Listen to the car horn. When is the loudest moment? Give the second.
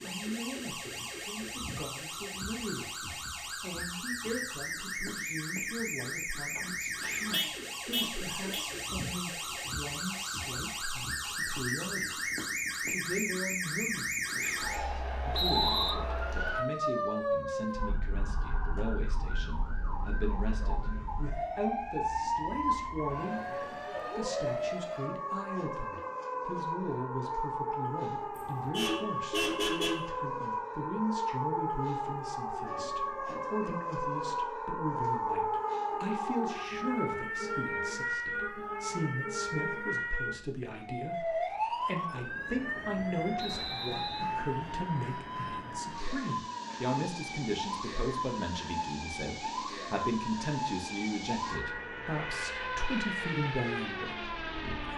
30 s.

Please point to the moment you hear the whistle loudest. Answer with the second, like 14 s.
16 s.